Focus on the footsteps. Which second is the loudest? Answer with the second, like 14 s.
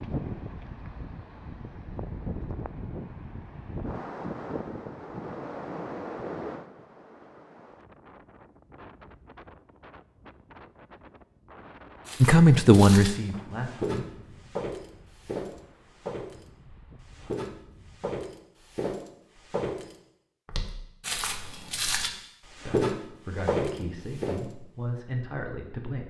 23 s.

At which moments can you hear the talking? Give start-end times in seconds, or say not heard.
12.2-14.3, 22.6-26.0.